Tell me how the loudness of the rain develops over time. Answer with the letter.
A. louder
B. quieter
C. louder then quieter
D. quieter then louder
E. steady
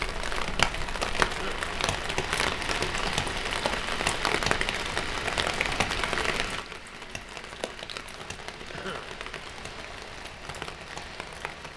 B.